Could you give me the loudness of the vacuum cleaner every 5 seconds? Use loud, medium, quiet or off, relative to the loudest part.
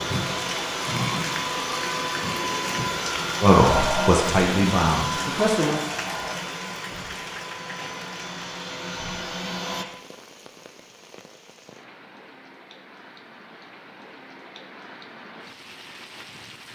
loud, medium, off, off.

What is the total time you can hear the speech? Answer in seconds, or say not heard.
2 s.